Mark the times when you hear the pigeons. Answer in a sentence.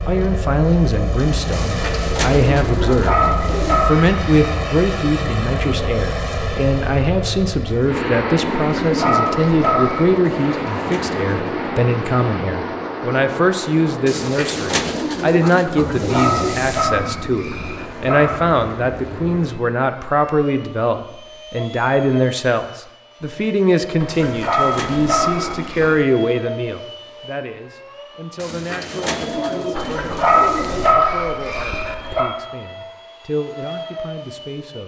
You can hear the pigeons from 1.5 to 3.9 s, from 10.2 to 11.5 s, from 14.1 to 16.9 s, from 24.1 to 26.0 s and from 28.4 to 30.9 s.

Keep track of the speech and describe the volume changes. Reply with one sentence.
The loudness of the speech goes down.